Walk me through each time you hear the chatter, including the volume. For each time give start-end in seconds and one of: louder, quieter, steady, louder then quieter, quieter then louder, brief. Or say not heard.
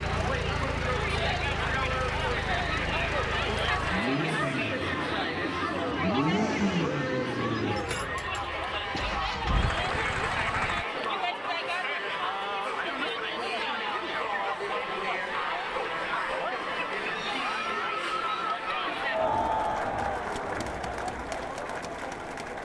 0.0-22.6 steady.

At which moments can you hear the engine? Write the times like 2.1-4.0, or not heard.
0.0-10.8.